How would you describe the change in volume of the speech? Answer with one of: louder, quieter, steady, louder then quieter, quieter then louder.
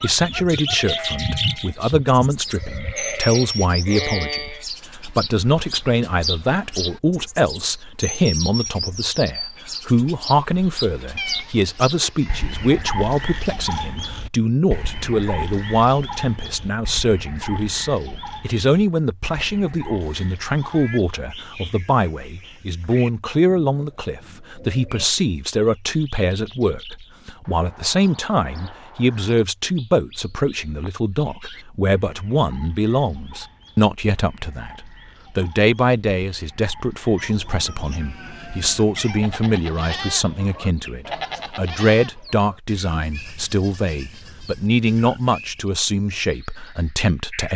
steady.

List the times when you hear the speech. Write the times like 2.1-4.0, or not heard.
0.0-47.5.